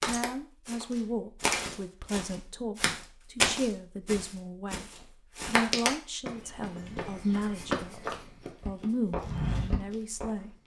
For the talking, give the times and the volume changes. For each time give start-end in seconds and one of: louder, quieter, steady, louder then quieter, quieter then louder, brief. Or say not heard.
0.1-4.8 quieter then louder
5.5-8.1 brief
8.7-10.6 brief.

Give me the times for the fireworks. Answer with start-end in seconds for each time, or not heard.
8.6-10.4.